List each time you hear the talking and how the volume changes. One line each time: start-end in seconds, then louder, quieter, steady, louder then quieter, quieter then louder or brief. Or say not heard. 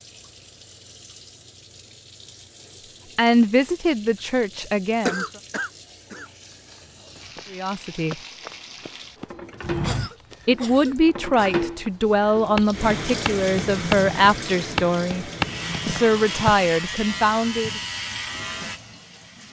3.1-5.2 brief
7.5-8.2 brief
10.4-15.2 steady
15.8-17.8 brief.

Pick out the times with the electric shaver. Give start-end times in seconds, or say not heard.
15.3-19.4.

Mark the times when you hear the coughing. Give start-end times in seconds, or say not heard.
5.0-6.3, 9.8-11.7.